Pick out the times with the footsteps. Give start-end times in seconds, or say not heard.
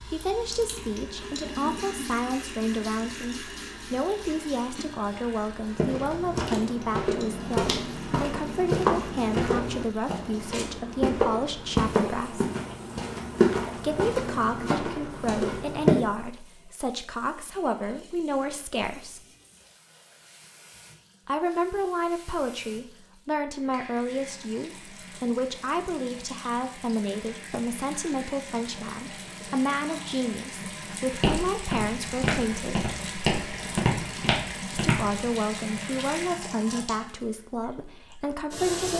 5.8-16.0, 31.2-35.2.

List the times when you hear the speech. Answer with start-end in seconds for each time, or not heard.
0.0-12.5, 13.8-19.2, 21.2-32.9, 34.7-38.9.